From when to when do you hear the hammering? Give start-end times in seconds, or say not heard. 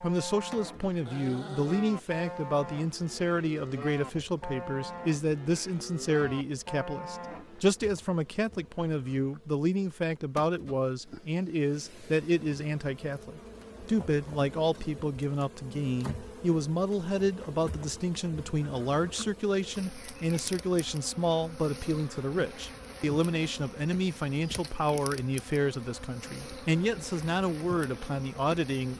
not heard.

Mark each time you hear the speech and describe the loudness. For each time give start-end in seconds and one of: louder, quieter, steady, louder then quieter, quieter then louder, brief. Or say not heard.
0.0-28.9 steady.